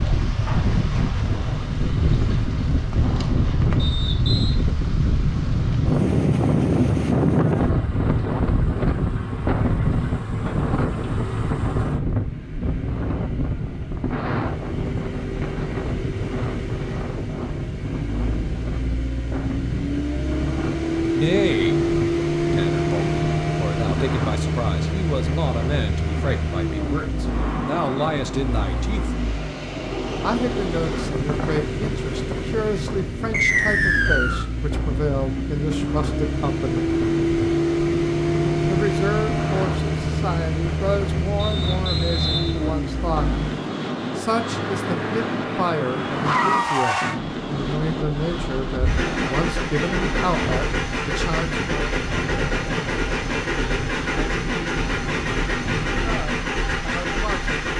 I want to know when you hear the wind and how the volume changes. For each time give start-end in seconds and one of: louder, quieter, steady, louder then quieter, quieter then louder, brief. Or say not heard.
0.0-57.7 quieter.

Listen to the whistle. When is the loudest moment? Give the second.
34 s.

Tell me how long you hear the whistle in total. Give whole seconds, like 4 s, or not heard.
4 s.